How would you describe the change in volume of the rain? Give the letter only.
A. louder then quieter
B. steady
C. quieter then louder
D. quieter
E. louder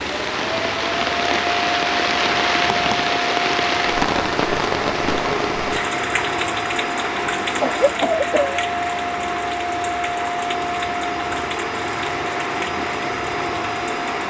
D.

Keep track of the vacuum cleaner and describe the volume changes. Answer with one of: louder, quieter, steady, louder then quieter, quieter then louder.
steady.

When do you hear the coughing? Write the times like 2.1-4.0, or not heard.
7.5-8.6.